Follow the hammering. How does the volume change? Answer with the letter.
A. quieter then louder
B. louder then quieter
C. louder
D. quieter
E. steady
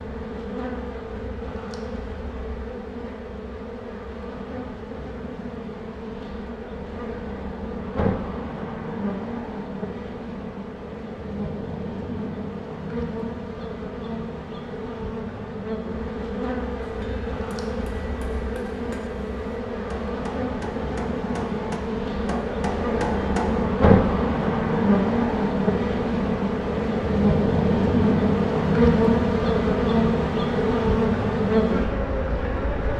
C.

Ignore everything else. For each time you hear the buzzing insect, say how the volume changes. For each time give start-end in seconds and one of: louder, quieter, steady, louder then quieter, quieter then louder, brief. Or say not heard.
0.0-32.9 louder.